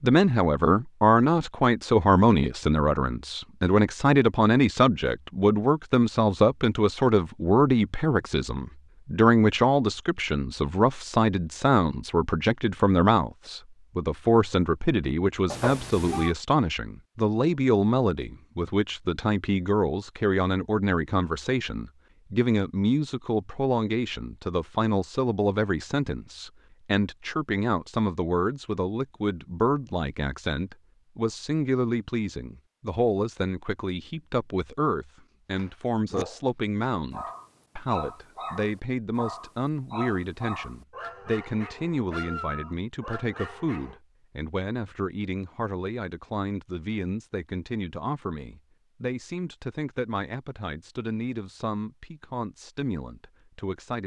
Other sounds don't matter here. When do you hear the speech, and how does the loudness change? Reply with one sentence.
The speech can be heard from 0.0 to 54.0 s, getting quieter.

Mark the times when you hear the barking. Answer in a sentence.
The barking can be heard from 35.5 to 44.0 s.